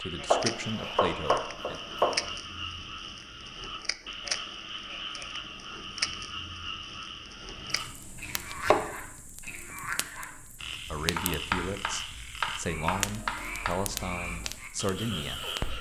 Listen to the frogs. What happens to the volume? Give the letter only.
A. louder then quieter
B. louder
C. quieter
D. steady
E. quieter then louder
D.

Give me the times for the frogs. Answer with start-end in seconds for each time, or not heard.
0.0-15.7.